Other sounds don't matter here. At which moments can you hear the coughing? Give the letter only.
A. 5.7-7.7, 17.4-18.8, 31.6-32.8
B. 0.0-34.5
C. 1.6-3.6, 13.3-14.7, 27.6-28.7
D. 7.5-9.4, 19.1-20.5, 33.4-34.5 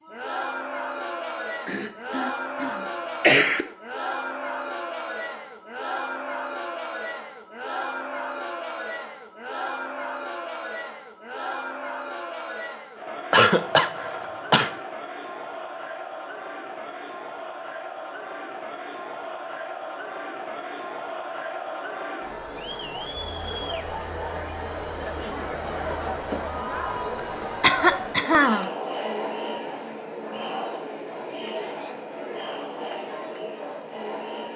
C.